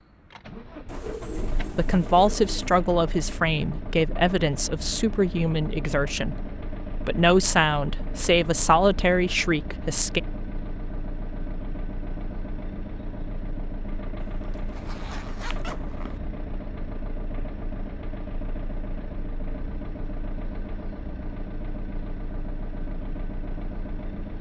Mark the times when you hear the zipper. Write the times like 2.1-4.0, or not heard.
14.3-16.2.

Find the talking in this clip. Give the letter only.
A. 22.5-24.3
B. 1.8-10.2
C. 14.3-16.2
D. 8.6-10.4
B.